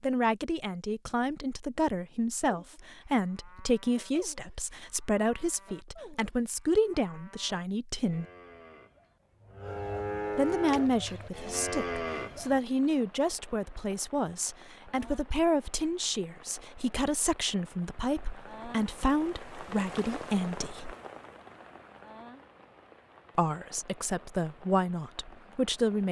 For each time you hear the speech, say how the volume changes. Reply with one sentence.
The speech can be heard from 0.0 to 8.2 s, at a steady volume; from 10.3 to 20.9 s, at a steady volume; and briefly from 23.4 to 26.0 s.